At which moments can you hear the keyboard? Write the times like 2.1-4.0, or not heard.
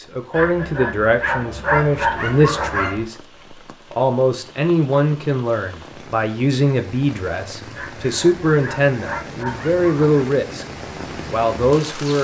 not heard.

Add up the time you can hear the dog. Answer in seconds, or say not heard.
5 s.